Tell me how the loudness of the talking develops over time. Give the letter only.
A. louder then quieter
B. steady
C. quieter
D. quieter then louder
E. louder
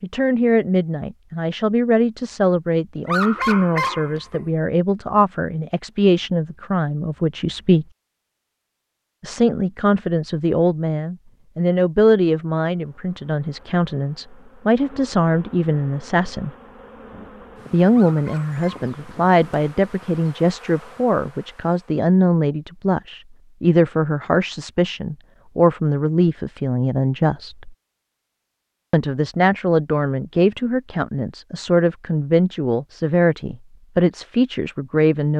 B.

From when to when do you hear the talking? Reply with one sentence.
You can hear the talking from 0.0 to 7.8 s, from 9.2 to 16.5 s, from 17.7 to 27.8 s and from 28.9 to 35.3 s.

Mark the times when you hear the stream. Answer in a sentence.
The stream can't be heard in this clip.